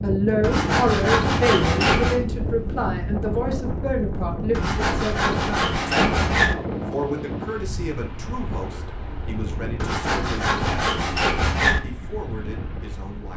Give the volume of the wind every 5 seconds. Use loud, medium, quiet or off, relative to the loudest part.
loud, loud, medium.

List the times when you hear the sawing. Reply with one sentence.
You can hear the sawing from 0.4 to 2.2 s, from 4.5 to 6.5 s and from 9.8 to 11.8 s.